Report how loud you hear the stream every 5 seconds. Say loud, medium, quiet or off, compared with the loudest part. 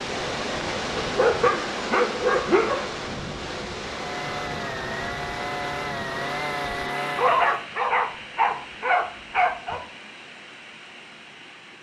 loud, medium, quiet.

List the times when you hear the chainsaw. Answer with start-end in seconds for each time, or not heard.
3.9-7.7.